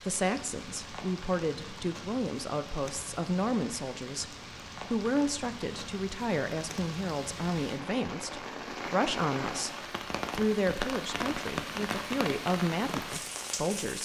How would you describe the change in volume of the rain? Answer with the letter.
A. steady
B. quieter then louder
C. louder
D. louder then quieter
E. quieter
C.